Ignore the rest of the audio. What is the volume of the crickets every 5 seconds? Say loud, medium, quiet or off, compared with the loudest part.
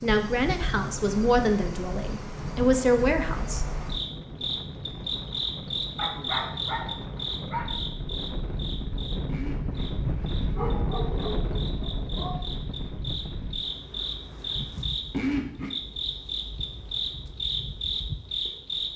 medium, loud, medium, loud.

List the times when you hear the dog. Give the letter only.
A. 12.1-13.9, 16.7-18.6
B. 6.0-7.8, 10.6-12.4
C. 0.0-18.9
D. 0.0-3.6
B.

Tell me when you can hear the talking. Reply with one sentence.
You can hear the talking from 0.0 to 3.6 s.